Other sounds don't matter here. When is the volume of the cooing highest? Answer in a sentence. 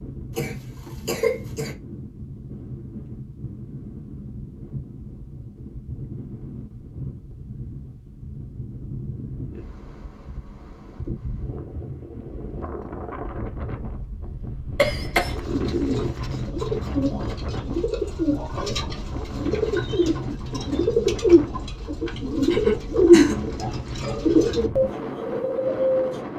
The volume of the cooing peaks at 23 seconds.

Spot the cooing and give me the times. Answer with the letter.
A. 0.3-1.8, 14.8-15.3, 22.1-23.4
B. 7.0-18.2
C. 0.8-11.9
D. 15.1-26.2
D.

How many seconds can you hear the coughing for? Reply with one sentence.
You can hear the coughing for 3 seconds altogether.